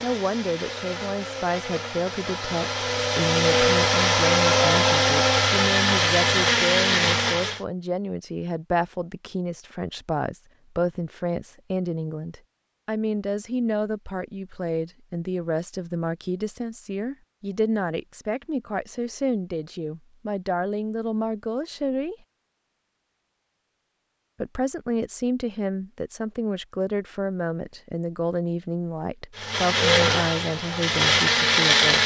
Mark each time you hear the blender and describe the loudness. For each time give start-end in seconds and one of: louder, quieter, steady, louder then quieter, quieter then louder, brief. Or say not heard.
0.0-7.6 louder
29.4-32.0 brief.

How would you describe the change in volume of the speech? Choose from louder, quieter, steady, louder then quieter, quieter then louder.
steady.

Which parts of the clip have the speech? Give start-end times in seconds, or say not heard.
0.0-22.1, 24.4-32.0.